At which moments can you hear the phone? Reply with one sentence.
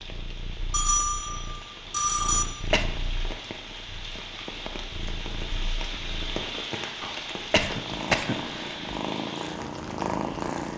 You can hear the phone from 0.7 to 2.5 s.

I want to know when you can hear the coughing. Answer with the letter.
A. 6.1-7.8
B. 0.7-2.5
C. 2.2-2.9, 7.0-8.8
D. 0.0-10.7
C.